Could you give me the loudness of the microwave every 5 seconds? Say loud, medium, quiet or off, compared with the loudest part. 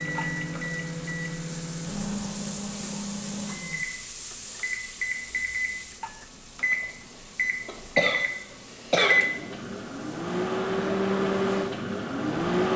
medium, loud, loud.